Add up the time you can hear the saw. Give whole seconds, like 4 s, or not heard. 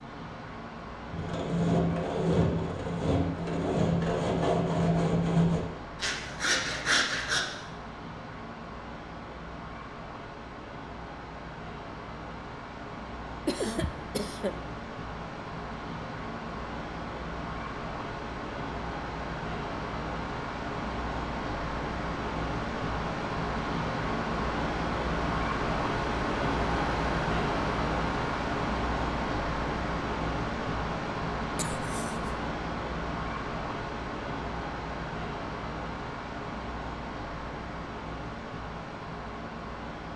6 s.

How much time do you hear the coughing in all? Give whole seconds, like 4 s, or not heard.
2 s.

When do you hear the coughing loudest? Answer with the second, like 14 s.
14 s.